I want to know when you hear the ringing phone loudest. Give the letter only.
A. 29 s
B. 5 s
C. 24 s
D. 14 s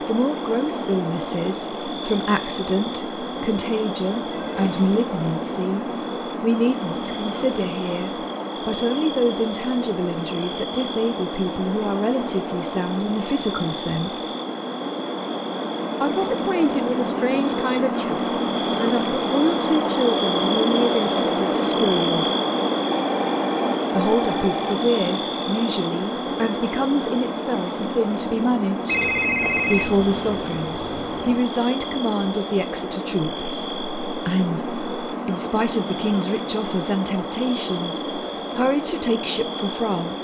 A.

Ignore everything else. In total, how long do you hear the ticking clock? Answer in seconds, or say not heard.
not heard.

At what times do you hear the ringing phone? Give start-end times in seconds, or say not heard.
4.1-5.0, 23.1-24.8, 28.9-31.4.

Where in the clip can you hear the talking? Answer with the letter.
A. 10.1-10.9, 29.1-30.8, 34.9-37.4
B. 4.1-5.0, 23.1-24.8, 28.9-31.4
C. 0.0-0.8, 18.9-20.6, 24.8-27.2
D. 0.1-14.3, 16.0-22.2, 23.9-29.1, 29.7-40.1
D.